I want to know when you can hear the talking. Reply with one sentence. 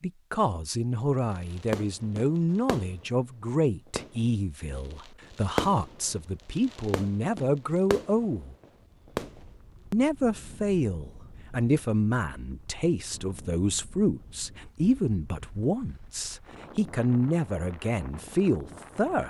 The talking can be heard from 0.0 to 8.6 s and from 9.9 to 19.2 s.